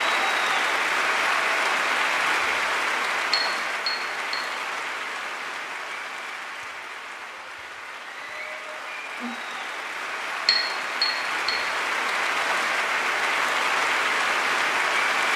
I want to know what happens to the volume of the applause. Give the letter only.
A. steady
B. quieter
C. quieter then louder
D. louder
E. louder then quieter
C.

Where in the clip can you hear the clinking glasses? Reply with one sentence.
The clinking glasses can be heard from 3.3 to 4.4 s and from 10.4 to 11.6 s.